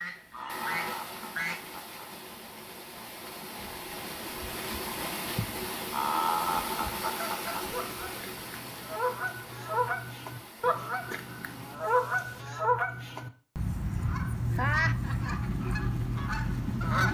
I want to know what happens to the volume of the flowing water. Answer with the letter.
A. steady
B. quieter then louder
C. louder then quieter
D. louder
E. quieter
C.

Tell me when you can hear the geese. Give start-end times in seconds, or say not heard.
0.0-1.7, 7.0-17.0.